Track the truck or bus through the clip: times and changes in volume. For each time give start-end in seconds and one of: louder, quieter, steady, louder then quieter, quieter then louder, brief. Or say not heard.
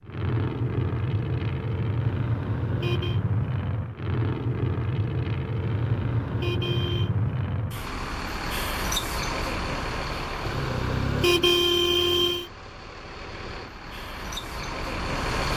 0.0-15.5 quieter.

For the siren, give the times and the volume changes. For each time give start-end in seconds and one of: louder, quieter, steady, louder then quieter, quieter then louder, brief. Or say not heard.
not heard.